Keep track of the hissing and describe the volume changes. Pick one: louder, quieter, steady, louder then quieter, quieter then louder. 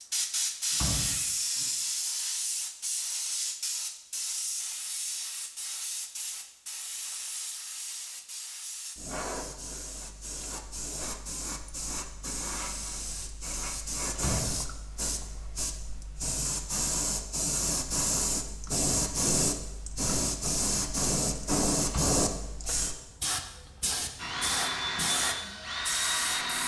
quieter then louder.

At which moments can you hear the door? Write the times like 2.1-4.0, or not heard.
0.7-1.6, 14.2-14.6, 21.9-22.8.